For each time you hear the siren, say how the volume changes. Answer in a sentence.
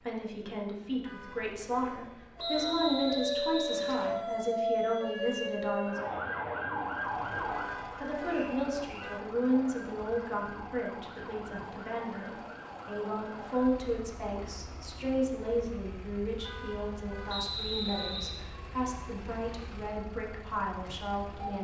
The siren can be heard from 2.4 to 21.5 s, getting quieter.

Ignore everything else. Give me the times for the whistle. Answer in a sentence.
The whistle can be heard from 2.4 to 4.2 s, from 8.3 to 9.2 s and from 17.2 to 18.4 s.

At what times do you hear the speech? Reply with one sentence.
The speech can be heard from 0.0 to 6.0 s and from 8.0 to 21.5 s.